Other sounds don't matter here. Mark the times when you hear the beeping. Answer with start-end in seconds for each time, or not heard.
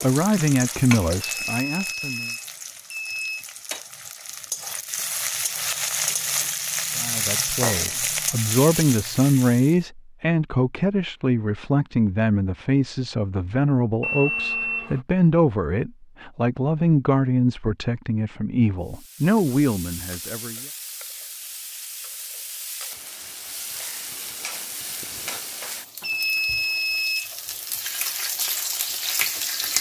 1.2-3.5, 14.0-15.0, 26.0-27.3.